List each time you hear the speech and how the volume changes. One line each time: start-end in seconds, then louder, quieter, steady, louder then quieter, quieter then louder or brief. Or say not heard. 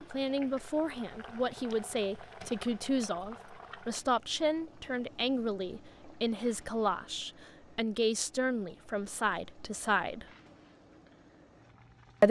0.1-10.2 steady.